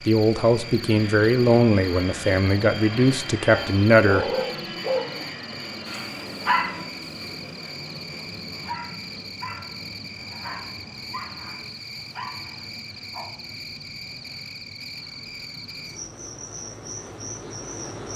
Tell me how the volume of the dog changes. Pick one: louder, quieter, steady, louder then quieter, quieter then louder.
quieter.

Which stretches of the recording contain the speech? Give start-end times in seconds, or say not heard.
0.0-4.3.